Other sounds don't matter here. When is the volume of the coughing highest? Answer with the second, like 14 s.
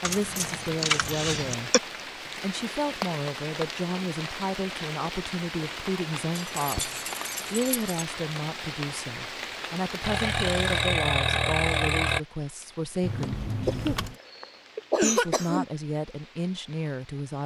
15 s.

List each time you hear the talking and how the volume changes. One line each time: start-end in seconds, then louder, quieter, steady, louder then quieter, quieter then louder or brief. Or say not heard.
0.0-13.4 steady
15.0-17.4 brief.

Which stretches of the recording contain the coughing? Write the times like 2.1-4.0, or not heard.
0.8-1.8, 13.7-15.7.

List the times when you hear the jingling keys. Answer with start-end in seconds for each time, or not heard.
0.0-1.6, 6.3-8.1, 13.0-14.2.